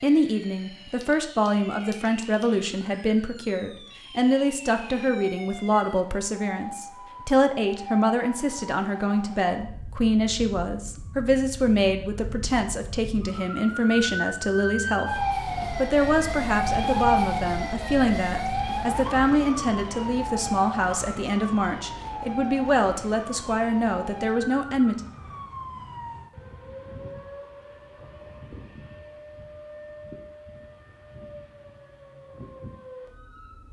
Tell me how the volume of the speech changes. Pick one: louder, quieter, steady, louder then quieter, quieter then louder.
steady.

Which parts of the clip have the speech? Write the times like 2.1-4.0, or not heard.
0.0-15.1, 15.7-25.0.